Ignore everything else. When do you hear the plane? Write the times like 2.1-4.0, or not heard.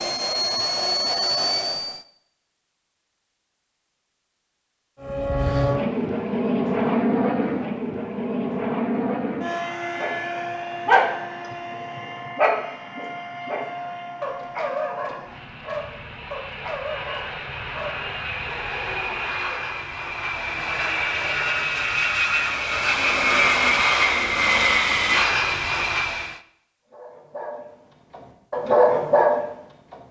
0.0-2.0, 5.0-26.4.